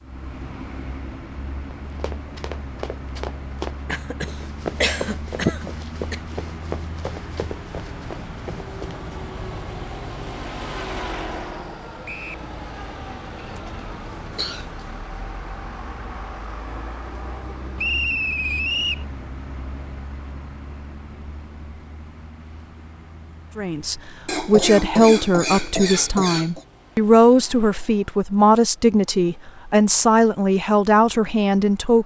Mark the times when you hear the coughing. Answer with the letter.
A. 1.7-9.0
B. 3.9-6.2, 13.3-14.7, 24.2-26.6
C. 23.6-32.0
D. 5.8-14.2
B.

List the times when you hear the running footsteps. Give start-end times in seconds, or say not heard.
1.7-9.0.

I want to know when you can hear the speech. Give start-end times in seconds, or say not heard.
23.6-32.0.